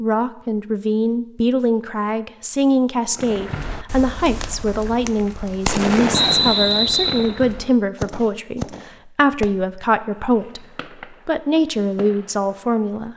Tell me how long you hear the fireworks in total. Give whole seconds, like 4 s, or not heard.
10 s.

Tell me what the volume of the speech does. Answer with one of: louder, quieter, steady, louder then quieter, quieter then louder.
steady.